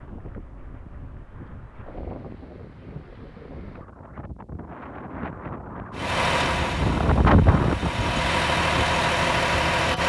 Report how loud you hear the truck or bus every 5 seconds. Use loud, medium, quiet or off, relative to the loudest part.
off, loud.